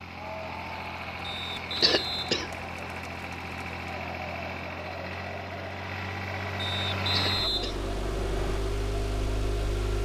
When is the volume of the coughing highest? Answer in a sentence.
The loudest moment of the coughing is at 2 seconds.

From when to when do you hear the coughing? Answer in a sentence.
You can hear the coughing from 1.8 to 2.5 s and from 7.0 to 7.8 s.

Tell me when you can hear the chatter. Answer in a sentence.
You can hear the chatter from 0.0 to 10.0 s.